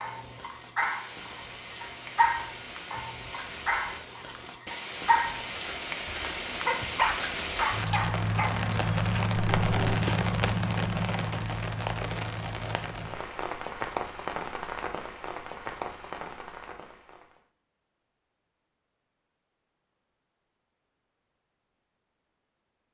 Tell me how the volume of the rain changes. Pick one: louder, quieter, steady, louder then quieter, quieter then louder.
louder then quieter.